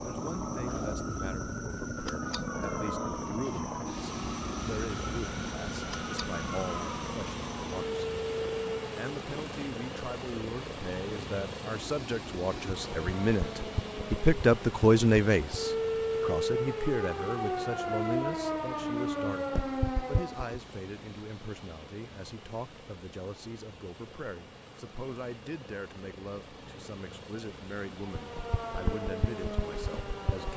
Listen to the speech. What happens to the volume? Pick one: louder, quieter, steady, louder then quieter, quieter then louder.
louder then quieter.